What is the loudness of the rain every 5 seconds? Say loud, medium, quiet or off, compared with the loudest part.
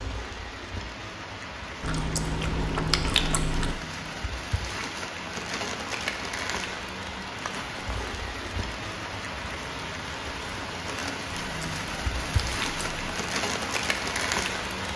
medium, loud, loud.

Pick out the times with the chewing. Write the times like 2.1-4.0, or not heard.
1.8-3.8, 11.3-13.2.